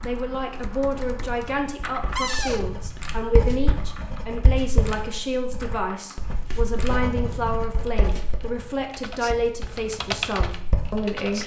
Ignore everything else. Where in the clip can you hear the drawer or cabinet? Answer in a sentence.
The drawer or cabinet can be heard from 2.1 to 2.6 s.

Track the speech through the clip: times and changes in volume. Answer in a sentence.
You can hear the speech from 0.0 to 11.4 s, at a steady volume.